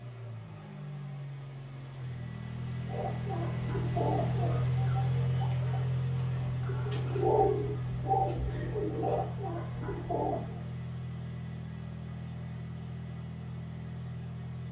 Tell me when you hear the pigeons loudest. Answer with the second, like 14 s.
7 s.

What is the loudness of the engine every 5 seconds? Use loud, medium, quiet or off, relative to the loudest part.
loud, loud, medium.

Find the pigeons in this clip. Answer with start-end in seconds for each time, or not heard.
2.9-10.6.